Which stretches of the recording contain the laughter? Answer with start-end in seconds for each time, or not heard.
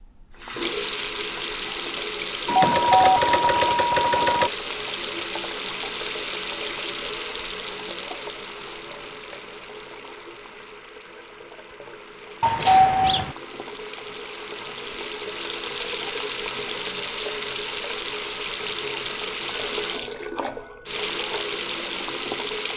not heard.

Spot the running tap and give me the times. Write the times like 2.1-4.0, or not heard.
0.0-22.7.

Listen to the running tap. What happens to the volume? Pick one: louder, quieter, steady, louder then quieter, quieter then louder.
quieter then louder.